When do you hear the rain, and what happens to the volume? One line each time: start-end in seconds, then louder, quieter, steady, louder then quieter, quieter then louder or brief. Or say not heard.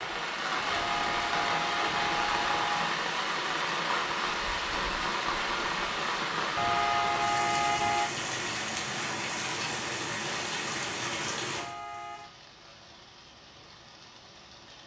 0.0-14.8 quieter.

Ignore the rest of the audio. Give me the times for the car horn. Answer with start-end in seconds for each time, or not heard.
0.7-3.0, 6.5-8.1, 11.6-12.3.